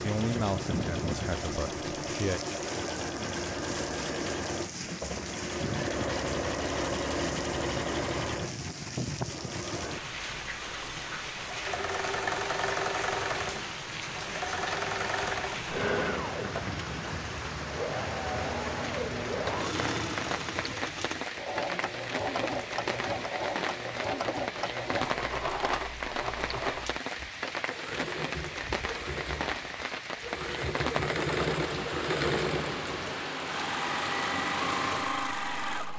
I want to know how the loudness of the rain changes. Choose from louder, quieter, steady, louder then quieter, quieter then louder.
steady.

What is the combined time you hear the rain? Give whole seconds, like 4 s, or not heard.
36 s.